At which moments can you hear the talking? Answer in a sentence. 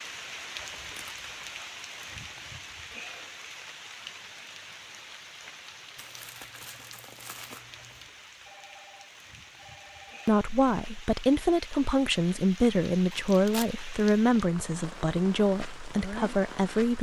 The talking can be heard from 10.2 to 16.9 s.